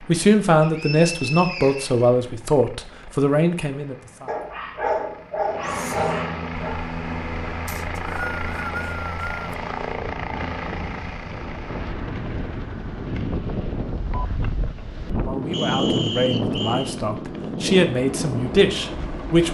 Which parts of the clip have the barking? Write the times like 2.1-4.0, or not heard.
4.2-6.8.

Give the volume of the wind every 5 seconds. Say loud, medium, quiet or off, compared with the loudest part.
off, quiet, medium, loud.